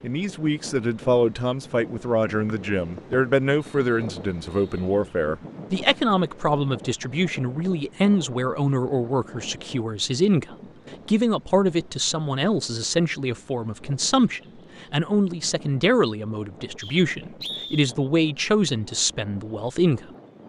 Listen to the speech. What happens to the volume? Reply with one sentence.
The loudness of the speech stays about the same.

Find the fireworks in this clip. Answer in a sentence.
You can't hear the fireworks here.